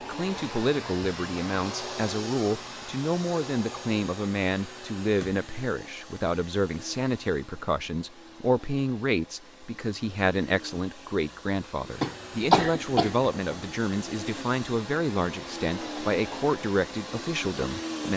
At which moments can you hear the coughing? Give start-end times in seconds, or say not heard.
12.0-13.7.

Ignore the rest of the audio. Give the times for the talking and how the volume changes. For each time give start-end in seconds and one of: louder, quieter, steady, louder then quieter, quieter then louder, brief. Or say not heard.
0.0-18.1 steady.